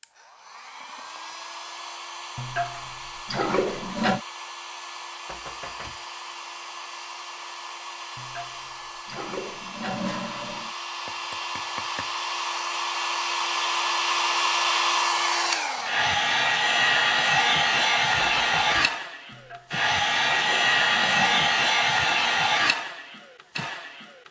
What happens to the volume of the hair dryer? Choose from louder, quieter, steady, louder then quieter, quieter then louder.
louder.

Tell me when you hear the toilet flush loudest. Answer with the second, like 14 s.
4 s.